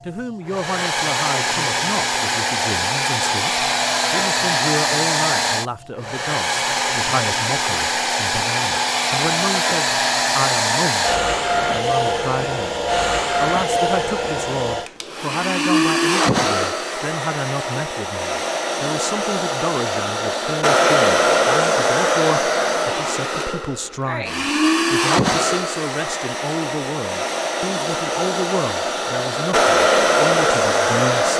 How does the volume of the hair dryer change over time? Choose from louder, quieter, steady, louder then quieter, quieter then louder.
steady.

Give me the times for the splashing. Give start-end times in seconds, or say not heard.
not heard.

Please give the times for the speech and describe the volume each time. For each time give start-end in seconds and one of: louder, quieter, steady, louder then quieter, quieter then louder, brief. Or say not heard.
0.0-31.3 steady.